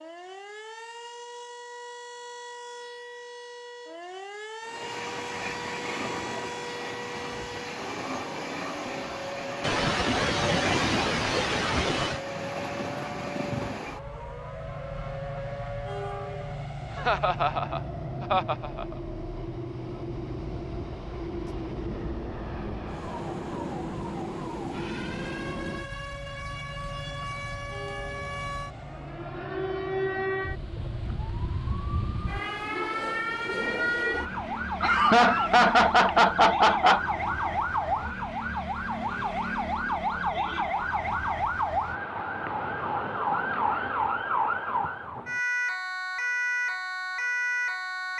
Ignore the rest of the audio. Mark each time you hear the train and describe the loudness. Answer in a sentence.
The train can be heard from 4.6 to 39.5 s, getting quieter.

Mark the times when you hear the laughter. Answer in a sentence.
The laughter can be heard from 9.6 to 12.2 s, from 16.9 to 18.9 s and from 34.8 to 37.0 s.